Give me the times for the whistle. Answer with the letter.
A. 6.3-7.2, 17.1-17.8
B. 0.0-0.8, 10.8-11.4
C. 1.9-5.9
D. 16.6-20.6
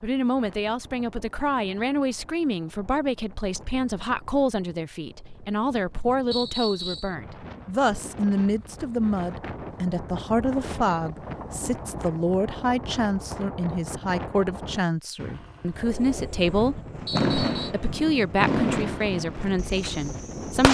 A.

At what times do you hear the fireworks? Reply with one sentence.
The fireworks can be heard from 16.6 to 20.6 s.